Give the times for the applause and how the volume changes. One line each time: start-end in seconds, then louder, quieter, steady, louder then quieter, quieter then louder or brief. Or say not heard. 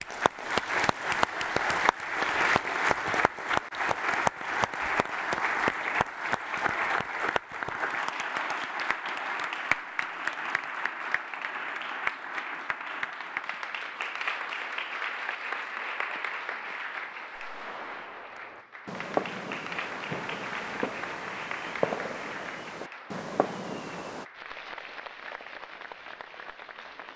0.0-27.1 quieter.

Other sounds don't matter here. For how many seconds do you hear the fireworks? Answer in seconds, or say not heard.
7 s.